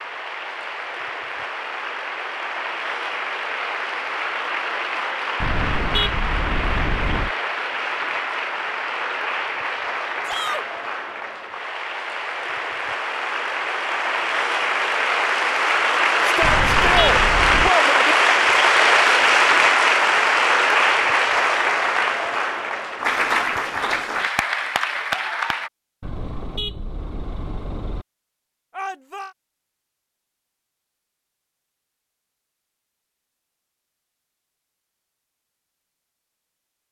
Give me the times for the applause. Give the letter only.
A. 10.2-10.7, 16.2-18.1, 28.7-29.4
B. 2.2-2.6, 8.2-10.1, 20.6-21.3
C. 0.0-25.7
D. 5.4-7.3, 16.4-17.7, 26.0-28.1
C.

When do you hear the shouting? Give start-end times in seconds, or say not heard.
10.2-10.7, 16.2-18.1, 28.7-29.4.